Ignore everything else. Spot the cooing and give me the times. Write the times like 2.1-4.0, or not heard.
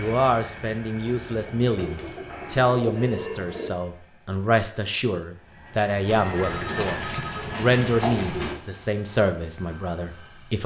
1.1-3.7, 6.0-8.6.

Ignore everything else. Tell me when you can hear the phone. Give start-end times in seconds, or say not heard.
2.3-3.7, 6.3-7.5.